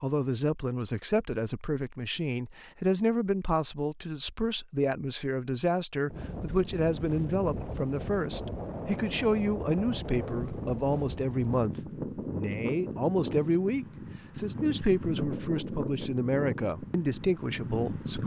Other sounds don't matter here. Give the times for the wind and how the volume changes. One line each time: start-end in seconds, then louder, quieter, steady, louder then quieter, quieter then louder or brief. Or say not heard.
6.1-18.2 steady.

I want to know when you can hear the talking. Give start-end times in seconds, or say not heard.
0.0-18.2.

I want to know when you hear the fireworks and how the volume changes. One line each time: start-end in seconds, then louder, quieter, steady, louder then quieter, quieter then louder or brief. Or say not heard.
not heard.